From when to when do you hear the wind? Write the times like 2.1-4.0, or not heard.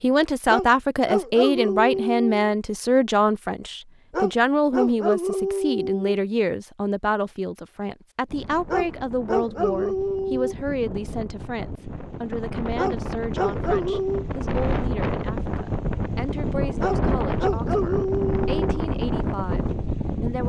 8.2-20.4.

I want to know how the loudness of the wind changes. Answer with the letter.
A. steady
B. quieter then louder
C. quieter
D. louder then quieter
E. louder
E.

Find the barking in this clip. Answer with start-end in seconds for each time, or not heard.
0.5-2.5, 4.1-6.2, 8.7-10.6, 12.8-14.2, 16.8-18.9.